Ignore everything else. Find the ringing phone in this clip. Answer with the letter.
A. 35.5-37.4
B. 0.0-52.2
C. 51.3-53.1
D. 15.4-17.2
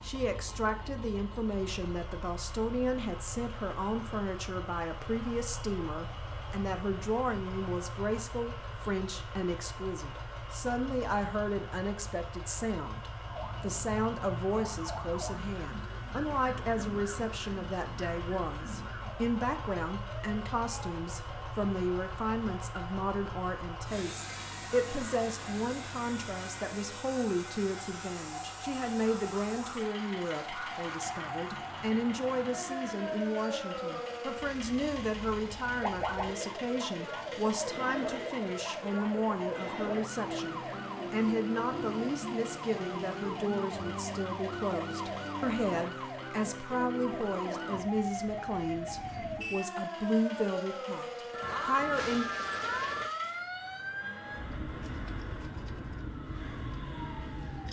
C.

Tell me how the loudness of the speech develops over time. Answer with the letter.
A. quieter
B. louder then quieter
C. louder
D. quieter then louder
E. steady
E.